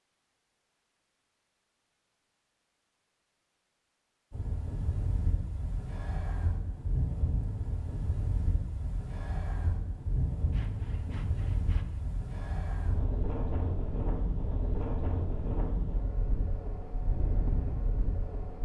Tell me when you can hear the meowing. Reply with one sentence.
The meowing can't be heard in this clip.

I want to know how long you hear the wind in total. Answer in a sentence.
The wind can be heard for 14 seconds in total.